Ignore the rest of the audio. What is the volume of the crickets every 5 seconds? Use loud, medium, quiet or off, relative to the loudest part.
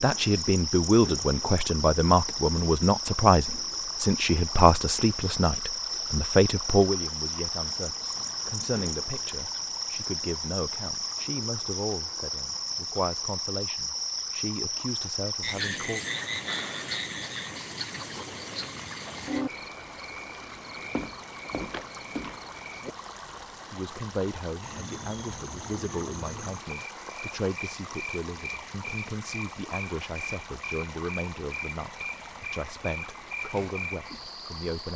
loud, loud, loud, loud, medium, medium, medium.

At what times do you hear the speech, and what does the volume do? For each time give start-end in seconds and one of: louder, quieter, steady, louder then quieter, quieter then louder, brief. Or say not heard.
0.0-16.0 quieter
23.4-34.9 steady.